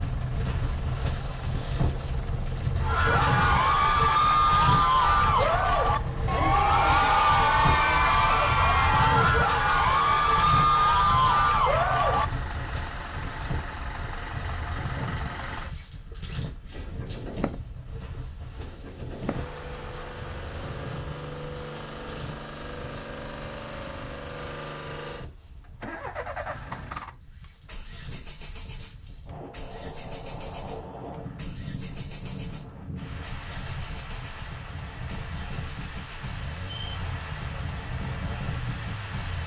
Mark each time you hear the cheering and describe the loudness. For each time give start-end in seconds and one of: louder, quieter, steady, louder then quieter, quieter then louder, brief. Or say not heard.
2.8-12.2 steady.